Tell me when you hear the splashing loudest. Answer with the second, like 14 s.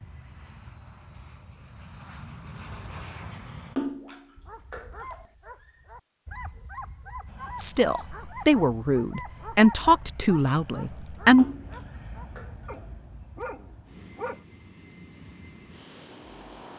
4 s.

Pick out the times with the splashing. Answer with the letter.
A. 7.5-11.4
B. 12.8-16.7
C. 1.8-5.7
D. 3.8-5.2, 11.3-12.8
D.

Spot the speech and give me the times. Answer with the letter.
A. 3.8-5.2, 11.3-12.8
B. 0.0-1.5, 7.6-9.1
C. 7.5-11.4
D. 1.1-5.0
C.